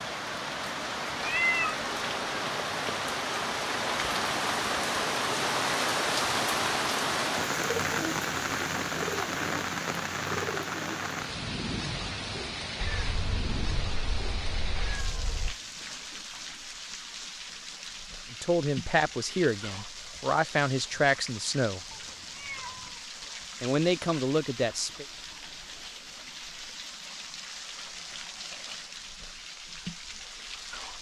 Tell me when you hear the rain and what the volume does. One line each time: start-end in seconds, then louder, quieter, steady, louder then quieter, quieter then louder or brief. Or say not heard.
0.0-30.9 quieter.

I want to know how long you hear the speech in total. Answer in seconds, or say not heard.
5 s.